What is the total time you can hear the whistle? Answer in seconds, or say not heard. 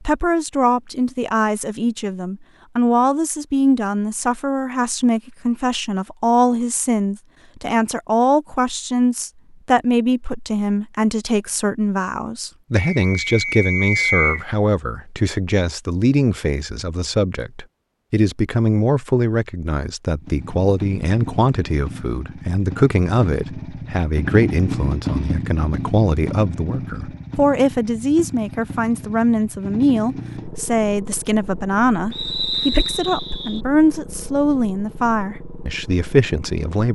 3 s.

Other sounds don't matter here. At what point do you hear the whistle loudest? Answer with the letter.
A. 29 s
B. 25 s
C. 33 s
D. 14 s
D.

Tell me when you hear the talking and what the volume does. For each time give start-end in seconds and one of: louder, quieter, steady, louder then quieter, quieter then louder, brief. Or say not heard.
0.1-36.9 steady.